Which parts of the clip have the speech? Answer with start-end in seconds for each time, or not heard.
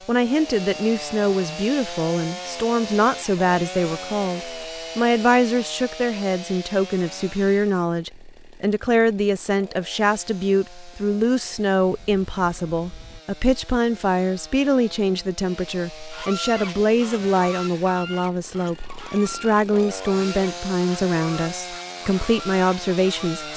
0.1-23.5.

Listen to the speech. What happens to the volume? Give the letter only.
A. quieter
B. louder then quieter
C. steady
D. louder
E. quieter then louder
C.